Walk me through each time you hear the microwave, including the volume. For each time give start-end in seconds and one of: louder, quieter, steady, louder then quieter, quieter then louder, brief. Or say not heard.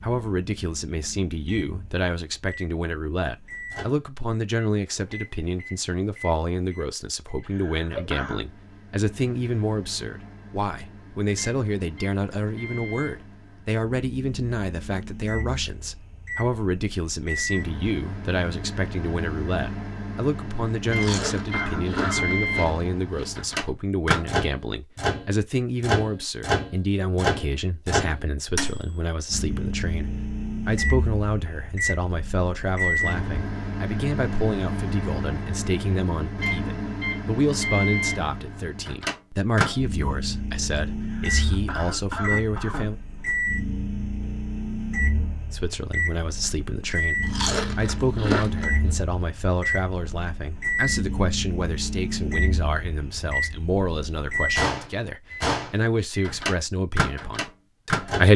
0.0-58.3 louder.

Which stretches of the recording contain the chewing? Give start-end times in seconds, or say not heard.
20.9-23.7, 47.2-48.9.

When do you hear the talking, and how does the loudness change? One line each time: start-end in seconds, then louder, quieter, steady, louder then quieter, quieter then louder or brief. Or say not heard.
0.0-43.0 steady
45.5-58.3 steady.